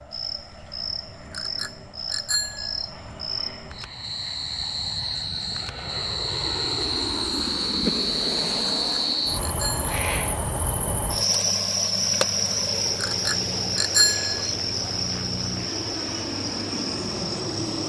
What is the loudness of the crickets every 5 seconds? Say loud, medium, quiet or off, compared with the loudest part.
medium, loud, loud, medium.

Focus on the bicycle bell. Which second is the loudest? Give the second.
14 s.